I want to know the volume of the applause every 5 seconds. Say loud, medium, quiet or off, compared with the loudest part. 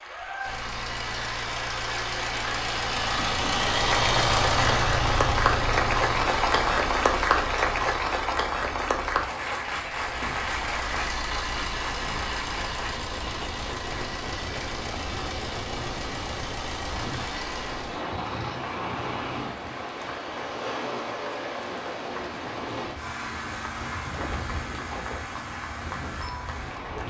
medium, loud, medium, quiet, quiet, quiet.